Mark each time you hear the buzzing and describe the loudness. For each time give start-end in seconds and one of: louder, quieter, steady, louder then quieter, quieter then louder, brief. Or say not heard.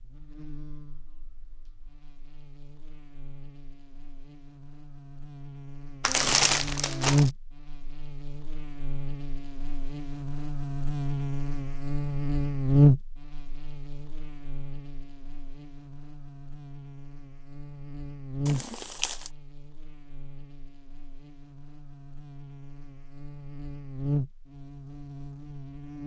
0.0-26.0 louder then quieter.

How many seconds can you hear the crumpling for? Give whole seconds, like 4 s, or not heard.
2 s.